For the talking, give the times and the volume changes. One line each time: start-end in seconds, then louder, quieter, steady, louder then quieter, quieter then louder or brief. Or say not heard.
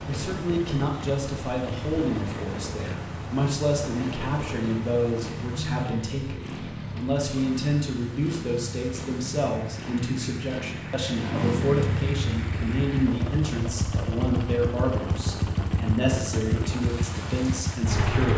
0.1-18.3 steady.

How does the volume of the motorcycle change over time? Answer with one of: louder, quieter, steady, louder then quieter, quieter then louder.
louder.